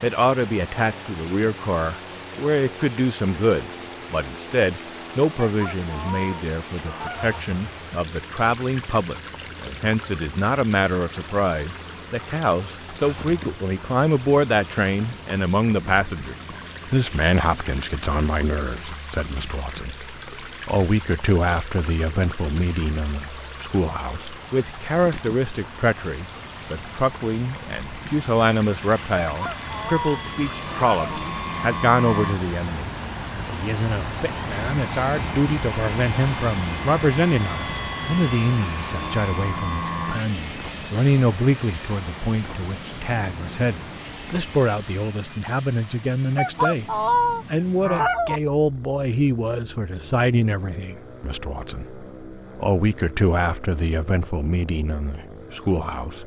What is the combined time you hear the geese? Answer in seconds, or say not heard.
6 s.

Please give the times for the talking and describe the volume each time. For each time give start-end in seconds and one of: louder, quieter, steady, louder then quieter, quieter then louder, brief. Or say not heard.
0.0-56.2 steady.